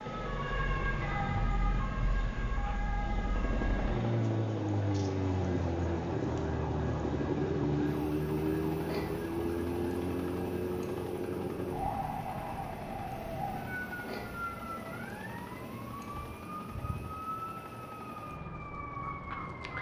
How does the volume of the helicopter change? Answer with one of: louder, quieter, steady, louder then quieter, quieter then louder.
quieter.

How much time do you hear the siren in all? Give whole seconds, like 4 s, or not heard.
20 s.